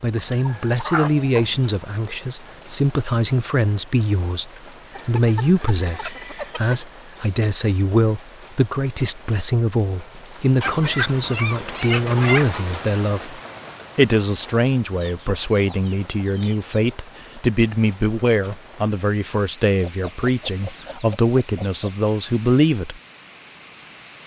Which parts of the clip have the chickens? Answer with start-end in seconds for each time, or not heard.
0.1-1.6, 4.9-6.8, 10.6-12.6, 14.9-16.6, 19.8-21.9.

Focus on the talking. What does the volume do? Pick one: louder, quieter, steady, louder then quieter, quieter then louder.
steady.